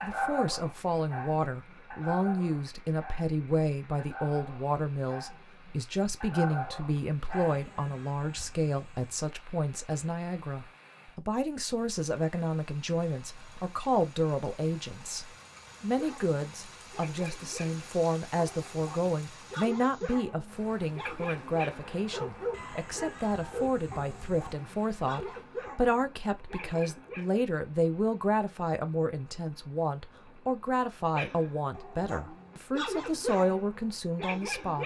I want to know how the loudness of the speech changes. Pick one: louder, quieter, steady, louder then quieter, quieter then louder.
steady.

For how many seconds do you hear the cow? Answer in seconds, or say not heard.
not heard.